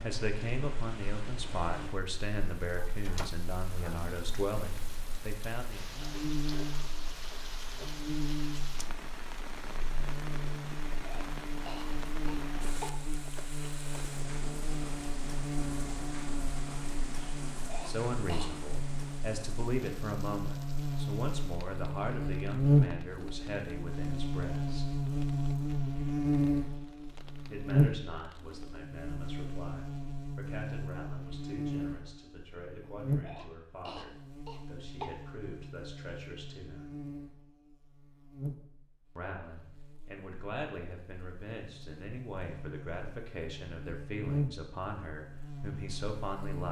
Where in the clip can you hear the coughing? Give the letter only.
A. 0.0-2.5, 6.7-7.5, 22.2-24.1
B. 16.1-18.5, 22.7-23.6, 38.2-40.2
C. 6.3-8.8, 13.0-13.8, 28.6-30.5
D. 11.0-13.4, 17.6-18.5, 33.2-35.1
D.